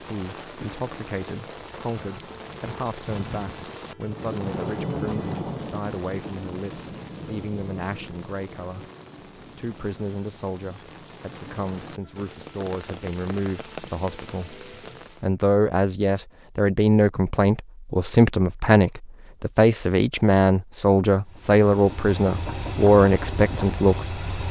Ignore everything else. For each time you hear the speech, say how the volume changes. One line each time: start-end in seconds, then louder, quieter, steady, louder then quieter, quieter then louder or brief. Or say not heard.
0.0-14.6 steady
15.2-24.1 steady.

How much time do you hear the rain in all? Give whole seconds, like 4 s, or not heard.
15 s.